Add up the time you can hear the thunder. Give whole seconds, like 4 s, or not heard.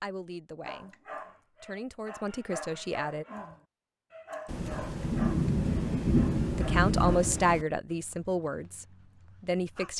3 s.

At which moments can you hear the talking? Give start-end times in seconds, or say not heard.
0.0-0.9, 1.6-3.2, 5.9-9.9.